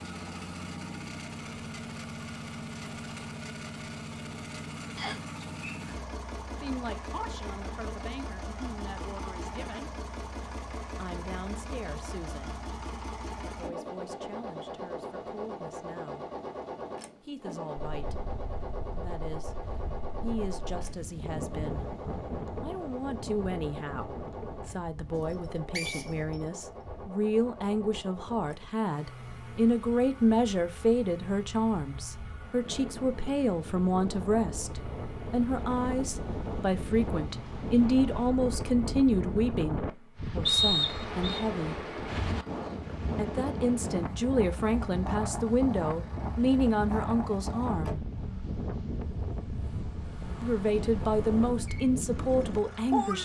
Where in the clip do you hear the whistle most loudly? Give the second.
41 s.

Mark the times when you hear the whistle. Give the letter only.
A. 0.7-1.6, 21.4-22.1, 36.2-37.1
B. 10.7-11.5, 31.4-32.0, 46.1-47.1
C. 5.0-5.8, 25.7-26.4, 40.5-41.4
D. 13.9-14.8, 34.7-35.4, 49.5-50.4
C.